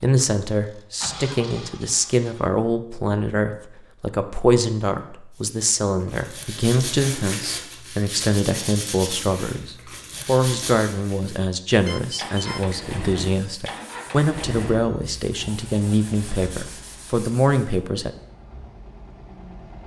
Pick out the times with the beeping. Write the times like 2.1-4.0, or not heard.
11.7-12.7.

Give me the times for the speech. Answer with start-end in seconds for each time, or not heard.
0.0-18.1.